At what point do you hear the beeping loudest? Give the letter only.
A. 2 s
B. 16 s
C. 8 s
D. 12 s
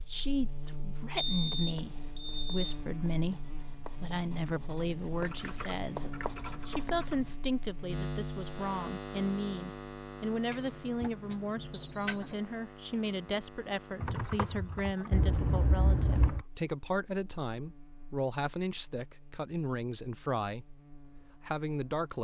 D.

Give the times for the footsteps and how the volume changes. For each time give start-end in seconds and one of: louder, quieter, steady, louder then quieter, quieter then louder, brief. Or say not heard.
not heard.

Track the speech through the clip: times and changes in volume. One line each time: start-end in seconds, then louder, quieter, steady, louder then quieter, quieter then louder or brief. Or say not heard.
0.1-20.8 steady
21.4-22.1 brief.